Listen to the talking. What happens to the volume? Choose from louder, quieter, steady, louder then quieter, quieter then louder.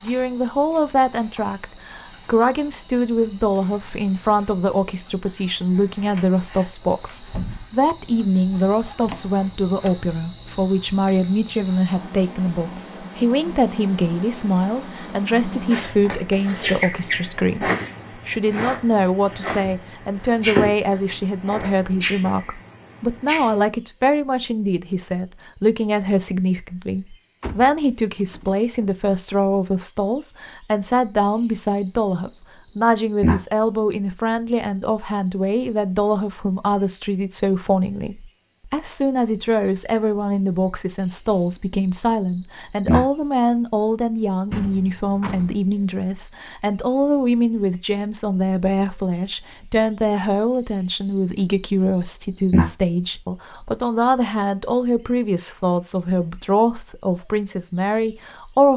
steady.